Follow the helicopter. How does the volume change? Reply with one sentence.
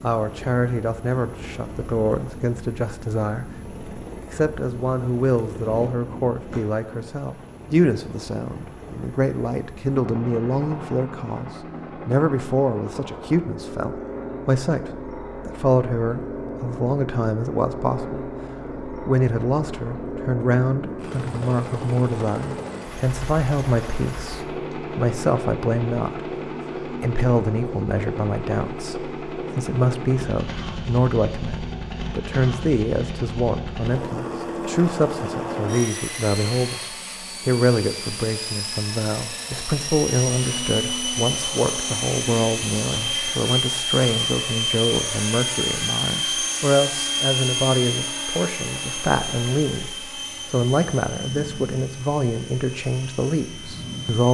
The volume of the helicopter goes up.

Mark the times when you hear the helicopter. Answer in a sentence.
You can hear the helicopter from 0.0 to 54.2 s.